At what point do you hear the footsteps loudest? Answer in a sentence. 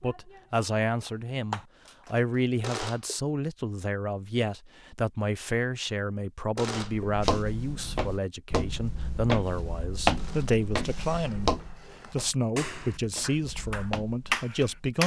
The volume of the footsteps peaks at 10 seconds.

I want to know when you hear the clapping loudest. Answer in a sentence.
The volume of the clapping peaks at 14 seconds.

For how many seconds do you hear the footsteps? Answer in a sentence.
The footsteps can be heard for 8 seconds in total.